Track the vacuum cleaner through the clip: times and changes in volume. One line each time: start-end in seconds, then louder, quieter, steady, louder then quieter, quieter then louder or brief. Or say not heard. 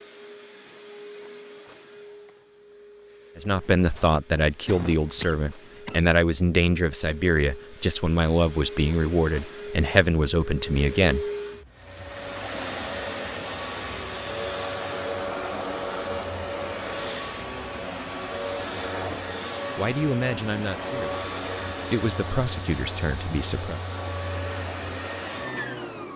0.0-26.1 louder.